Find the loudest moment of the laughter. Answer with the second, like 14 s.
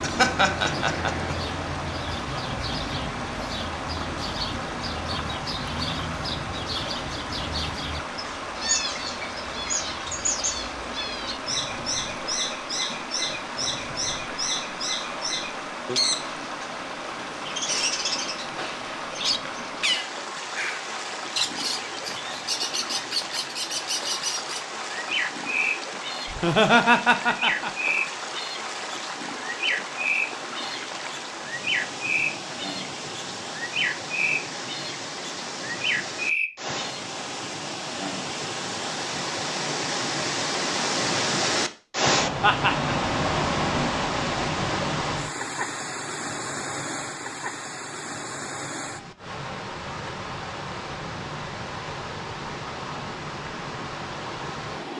27 s.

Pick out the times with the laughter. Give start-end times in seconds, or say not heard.
0.0-1.3, 26.2-27.9, 42.4-43.0.